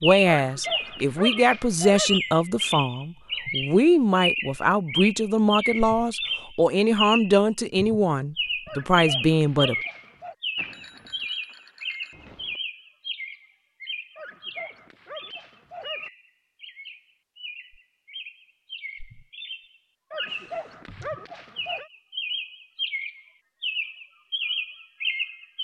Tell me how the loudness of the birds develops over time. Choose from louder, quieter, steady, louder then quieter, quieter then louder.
quieter then louder.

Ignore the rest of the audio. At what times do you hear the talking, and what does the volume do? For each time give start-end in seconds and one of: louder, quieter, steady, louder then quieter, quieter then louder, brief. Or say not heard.
0.0-9.8 steady.